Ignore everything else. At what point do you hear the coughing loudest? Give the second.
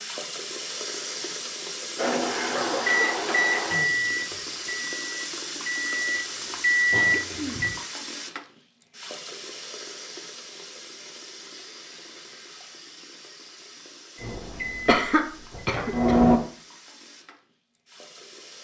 15 s.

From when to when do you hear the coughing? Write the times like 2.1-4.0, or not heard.
2.1-3.1, 6.9-7.7, 14.8-16.3.